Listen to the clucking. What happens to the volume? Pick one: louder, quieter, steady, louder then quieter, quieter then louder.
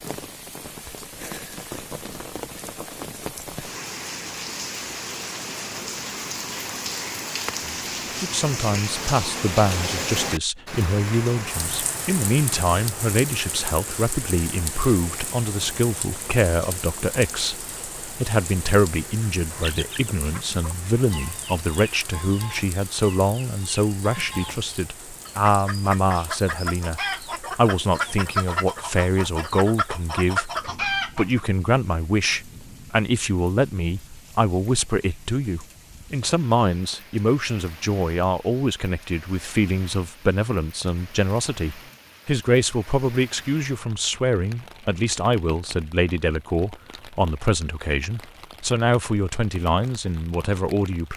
louder.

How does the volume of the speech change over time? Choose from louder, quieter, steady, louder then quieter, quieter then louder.
steady.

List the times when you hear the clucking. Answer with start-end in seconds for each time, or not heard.
19.5-31.4.